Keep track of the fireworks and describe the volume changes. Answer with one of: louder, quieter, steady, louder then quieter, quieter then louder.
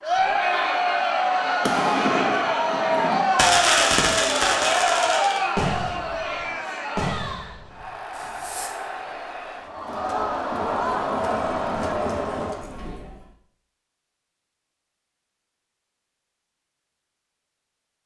louder then quieter.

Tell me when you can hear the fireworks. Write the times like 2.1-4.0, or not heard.
1.6-8.7.